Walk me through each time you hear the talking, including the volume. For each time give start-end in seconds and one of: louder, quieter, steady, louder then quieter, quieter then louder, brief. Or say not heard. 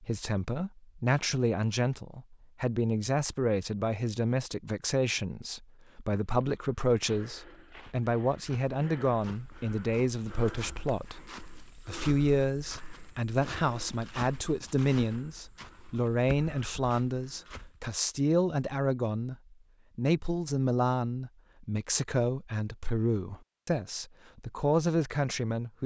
0.0-25.8 steady.